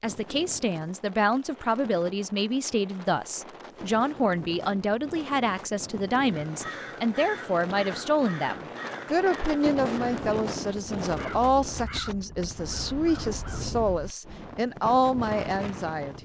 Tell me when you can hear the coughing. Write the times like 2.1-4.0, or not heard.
13.2-13.8.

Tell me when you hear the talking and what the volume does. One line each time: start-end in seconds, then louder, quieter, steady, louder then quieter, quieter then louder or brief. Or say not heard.
0.0-16.2 steady.